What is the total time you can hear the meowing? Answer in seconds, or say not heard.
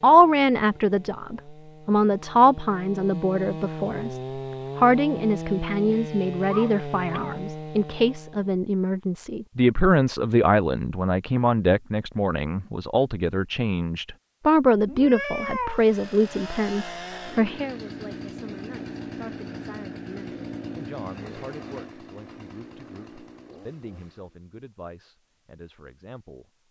2 s.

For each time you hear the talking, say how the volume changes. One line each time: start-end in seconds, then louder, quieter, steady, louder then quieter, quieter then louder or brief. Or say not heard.
0.0-26.4 quieter.